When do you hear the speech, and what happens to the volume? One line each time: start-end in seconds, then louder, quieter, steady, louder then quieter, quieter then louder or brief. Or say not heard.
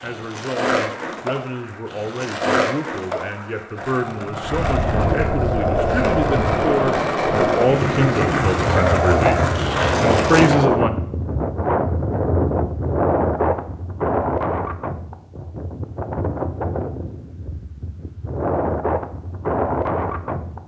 0.0-9.4 louder
10.0-10.9 brief.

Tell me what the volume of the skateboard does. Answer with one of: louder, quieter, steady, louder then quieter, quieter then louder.
louder.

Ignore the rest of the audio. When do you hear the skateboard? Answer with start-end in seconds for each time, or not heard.
0.0-10.6.